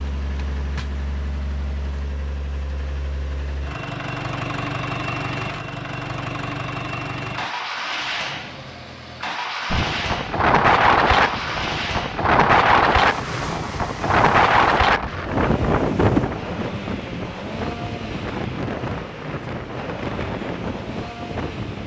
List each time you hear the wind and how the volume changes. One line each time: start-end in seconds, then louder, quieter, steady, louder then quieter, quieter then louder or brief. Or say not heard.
9.7-21.8 quieter.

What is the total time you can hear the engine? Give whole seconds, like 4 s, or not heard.
22 s.